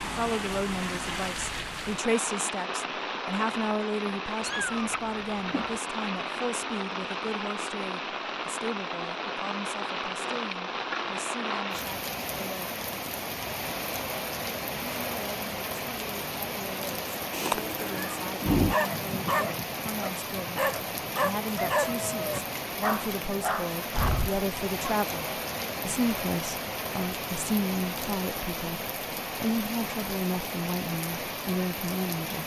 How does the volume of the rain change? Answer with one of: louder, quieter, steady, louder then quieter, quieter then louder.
steady.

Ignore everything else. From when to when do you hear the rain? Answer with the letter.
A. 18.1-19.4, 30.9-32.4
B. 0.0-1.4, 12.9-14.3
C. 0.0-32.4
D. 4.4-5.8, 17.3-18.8
C.